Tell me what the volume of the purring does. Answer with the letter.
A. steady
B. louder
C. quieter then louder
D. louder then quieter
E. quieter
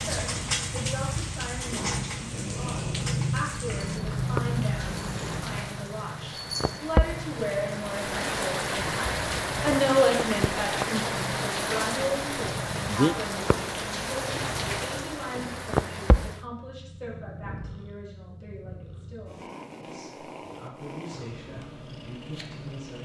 E.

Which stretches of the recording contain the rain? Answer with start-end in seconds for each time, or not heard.
0.0-16.4.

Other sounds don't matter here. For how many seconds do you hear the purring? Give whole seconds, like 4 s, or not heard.
23 s.